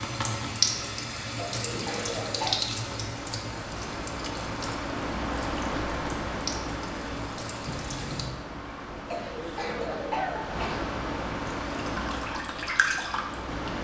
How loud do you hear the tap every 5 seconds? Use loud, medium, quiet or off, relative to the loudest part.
loud, medium, loud.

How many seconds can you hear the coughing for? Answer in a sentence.
You can hear the coughing for 3 seconds altogether.